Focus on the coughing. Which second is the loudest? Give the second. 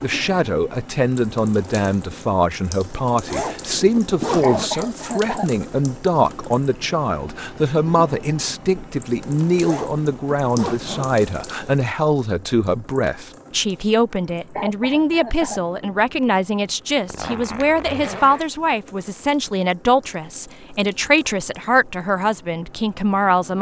5 s.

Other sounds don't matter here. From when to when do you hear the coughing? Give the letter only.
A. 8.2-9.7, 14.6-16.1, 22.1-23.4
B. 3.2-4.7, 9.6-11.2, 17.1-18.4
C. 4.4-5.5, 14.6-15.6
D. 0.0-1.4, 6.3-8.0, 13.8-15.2
C.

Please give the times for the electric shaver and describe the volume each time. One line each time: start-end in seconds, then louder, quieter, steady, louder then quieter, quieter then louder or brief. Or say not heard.
not heard.